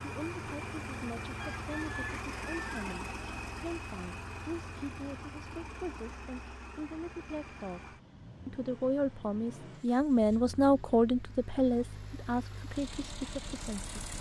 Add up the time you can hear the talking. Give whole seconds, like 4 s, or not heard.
14 s.